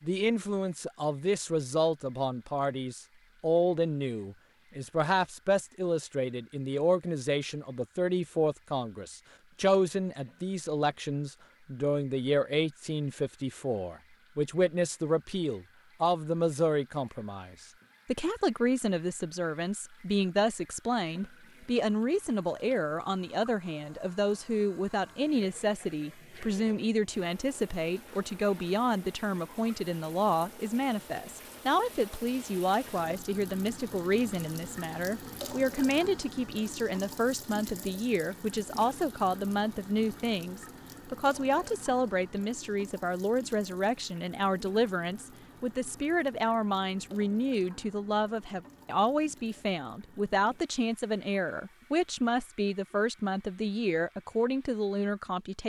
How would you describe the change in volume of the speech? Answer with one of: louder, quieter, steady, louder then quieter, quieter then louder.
steady.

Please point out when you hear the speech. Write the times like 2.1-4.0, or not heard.
0.0-55.6.